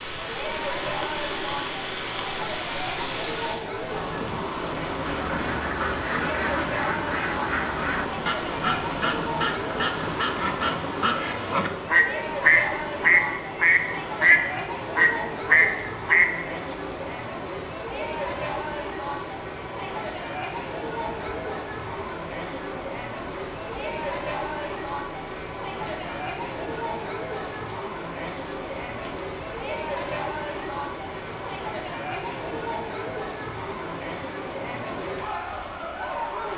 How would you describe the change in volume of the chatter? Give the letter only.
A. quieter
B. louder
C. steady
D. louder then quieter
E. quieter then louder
C.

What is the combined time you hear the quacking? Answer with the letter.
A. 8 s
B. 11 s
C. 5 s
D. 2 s
B.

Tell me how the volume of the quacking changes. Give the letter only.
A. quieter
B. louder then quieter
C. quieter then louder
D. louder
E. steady
D.